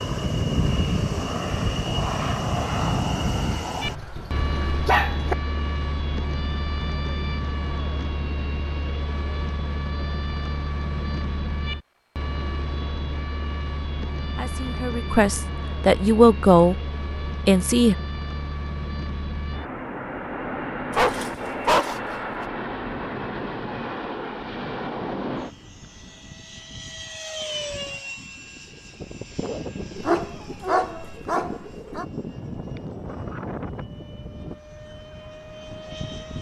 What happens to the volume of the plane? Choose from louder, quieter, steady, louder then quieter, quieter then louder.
quieter.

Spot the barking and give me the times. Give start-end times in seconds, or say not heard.
3.9-5.3, 20.9-22.4, 30.1-32.0.